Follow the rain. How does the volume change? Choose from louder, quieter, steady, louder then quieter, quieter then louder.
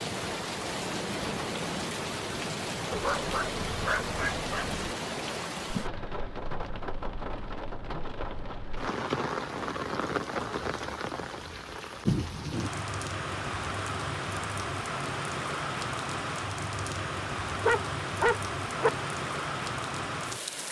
steady.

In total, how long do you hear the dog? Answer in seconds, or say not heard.
3 s.